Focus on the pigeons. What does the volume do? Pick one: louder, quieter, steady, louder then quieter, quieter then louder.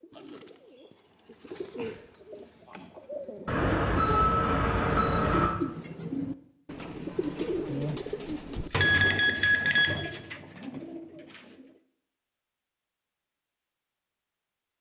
louder then quieter.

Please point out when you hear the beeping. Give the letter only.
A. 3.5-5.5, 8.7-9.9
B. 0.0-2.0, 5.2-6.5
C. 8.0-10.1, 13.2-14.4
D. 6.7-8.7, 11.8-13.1
A.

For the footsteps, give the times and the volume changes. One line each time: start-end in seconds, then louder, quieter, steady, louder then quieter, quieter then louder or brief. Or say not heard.
not heard.